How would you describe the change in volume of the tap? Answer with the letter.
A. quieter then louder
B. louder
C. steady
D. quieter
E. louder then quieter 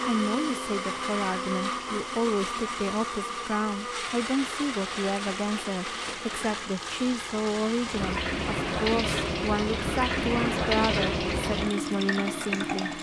B.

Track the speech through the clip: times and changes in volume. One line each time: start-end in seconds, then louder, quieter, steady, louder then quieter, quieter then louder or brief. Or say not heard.
0.0-12.9 steady.